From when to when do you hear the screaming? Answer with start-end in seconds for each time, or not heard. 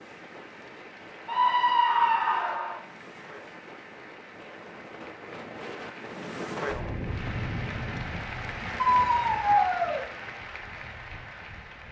1.2-2.8, 8.8-10.0.